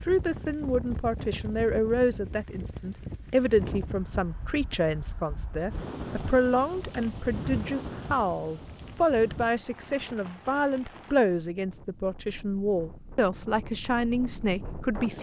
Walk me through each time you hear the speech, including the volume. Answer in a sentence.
You can hear the speech from 0.1 to 15.1 s, at a steady volume.